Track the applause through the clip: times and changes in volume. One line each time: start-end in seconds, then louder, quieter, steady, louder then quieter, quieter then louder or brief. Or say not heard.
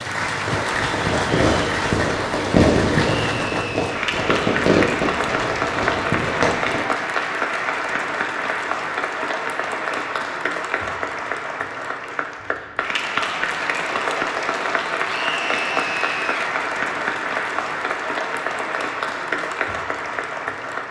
0.0-20.8 steady.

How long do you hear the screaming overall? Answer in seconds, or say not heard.
2 s.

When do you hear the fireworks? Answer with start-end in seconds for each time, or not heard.
0.5-6.8.